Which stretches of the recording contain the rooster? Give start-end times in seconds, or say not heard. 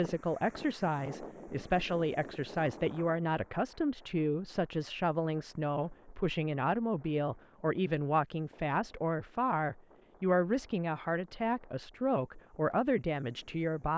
not heard.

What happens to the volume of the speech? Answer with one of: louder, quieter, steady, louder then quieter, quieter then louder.
steady.